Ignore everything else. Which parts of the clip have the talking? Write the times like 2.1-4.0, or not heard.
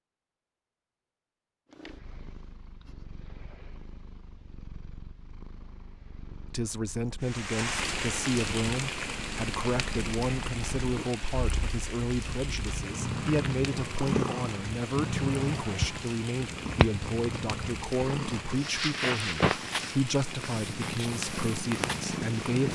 6.5-22.7.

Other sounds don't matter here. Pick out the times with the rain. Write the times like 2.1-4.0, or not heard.
7.2-22.7.